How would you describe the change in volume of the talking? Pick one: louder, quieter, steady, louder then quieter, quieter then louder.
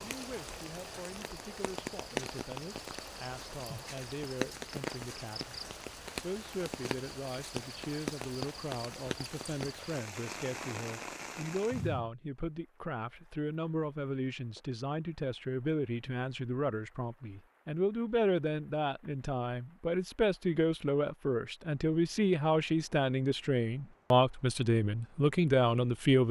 louder.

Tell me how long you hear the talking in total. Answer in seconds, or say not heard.
26 s.